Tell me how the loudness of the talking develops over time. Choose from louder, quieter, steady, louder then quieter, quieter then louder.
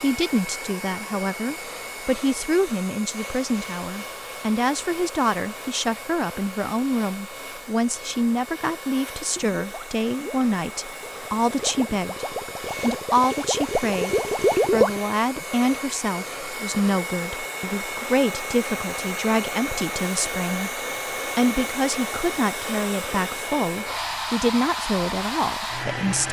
steady.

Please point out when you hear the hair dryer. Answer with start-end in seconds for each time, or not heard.
0.0-26.2.